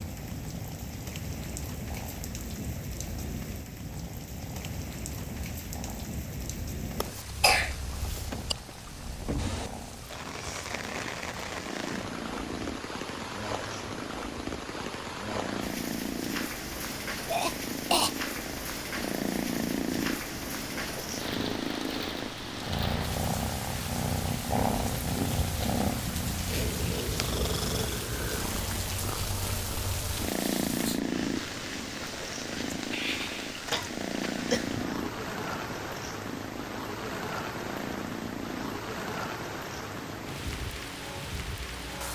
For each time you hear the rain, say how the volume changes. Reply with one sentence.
The rain can be heard from 0.0 to 42.0 s, at a steady volume.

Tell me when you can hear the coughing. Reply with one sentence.
The coughing can be heard from 7.0 to 8.6 s, from 17.2 to 18.1 s and from 33.7 to 34.6 s.